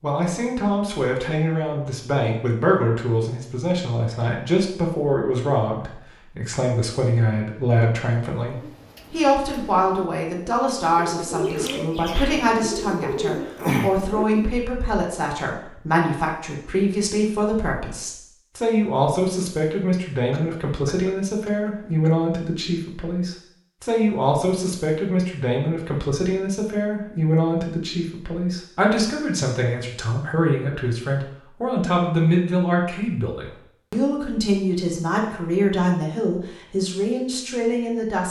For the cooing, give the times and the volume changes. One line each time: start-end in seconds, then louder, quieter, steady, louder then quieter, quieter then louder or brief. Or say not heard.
8.4-14.6 louder.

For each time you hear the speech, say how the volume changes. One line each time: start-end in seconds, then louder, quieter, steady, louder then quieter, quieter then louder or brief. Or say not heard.
0.0-38.2 steady.